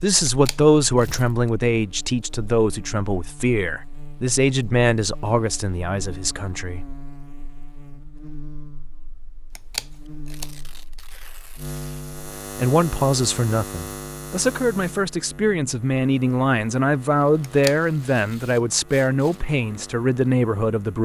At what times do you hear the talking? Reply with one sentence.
The talking can be heard from 0.0 to 6.8 s and from 12.6 to 21.0 s.